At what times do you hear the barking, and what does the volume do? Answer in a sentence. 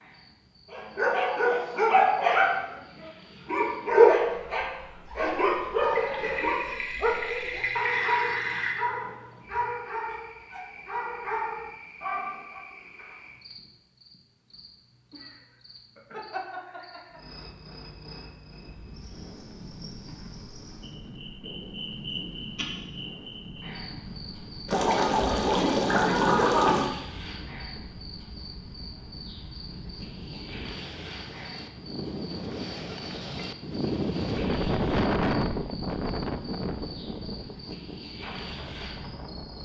You can hear the barking from 0.7 to 12.7 s, getting quieter.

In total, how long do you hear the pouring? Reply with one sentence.
You can hear the pouring for 5 seconds altogether.